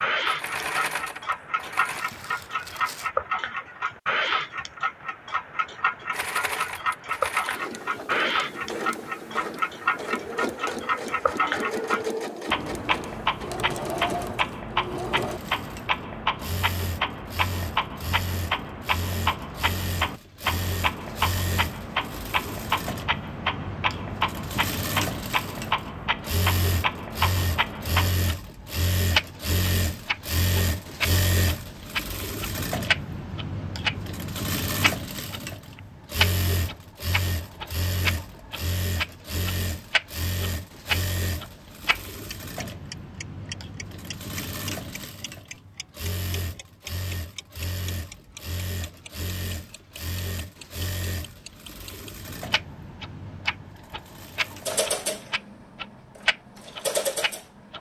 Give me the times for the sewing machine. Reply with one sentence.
The sewing machine can be heard from 0.2 to 2.0 s and from 6.1 to 57.7 s.